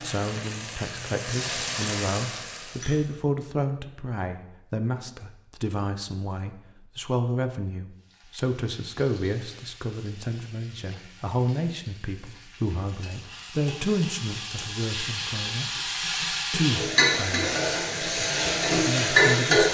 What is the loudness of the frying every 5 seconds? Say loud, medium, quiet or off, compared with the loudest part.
medium, quiet, quiet, loud.